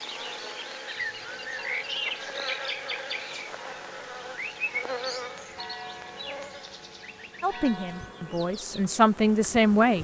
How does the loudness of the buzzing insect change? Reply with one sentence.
The loudness of the buzzing insect goes down.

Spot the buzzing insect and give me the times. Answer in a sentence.
You can hear the buzzing insect from 0.0 to 10.0 s.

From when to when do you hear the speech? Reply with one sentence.
The speech can be heard from 7.4 to 10.0 s.